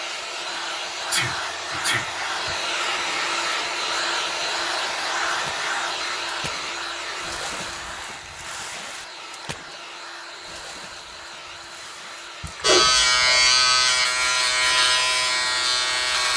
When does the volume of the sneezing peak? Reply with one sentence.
The volume of the sneezing peaks at 13 seconds.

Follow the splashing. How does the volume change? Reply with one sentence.
The loudness of the splashing goes up, then down.